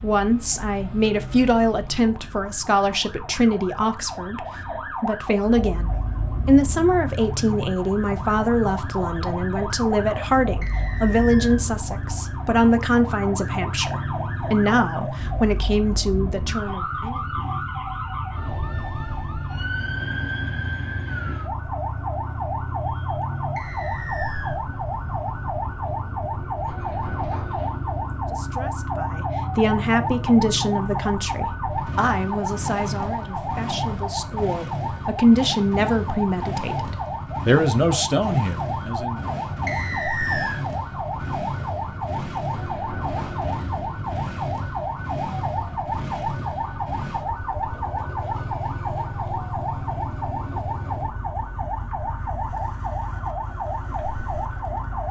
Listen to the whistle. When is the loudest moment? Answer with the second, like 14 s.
40 s.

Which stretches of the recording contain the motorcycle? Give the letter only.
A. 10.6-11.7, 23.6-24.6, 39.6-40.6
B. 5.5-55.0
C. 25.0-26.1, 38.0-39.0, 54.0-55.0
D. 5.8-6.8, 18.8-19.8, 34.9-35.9
B.